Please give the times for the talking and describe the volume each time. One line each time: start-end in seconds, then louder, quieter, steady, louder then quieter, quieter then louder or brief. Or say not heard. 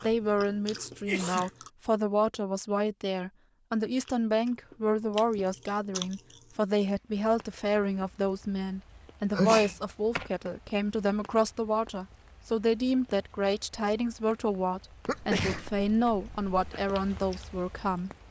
0.0-18.1 steady.